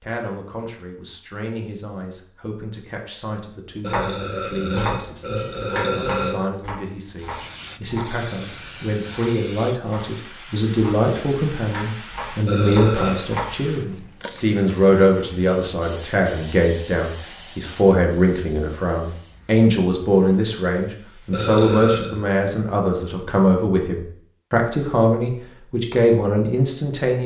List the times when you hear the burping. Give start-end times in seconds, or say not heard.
3.8-6.4, 12.4-13.2, 21.3-22.1.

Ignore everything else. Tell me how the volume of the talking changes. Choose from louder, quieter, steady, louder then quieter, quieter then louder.
louder.